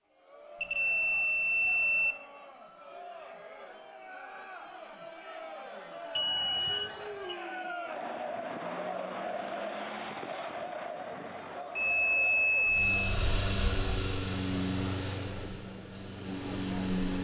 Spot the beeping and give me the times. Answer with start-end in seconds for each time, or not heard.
0.6-2.1, 6.2-7.3, 11.8-13.2.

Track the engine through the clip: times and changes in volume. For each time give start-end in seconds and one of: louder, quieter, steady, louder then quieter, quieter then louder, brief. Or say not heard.
12.6-17.2 quieter then louder.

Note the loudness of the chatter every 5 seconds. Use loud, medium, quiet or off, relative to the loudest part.
medium, loud, loud, medium.